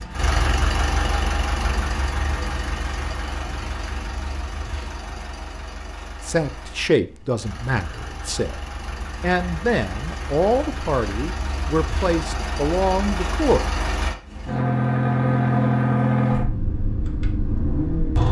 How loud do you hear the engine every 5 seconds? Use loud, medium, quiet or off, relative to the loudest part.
medium, quiet, medium, loud.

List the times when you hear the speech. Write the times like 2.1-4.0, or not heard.
6.2-13.6.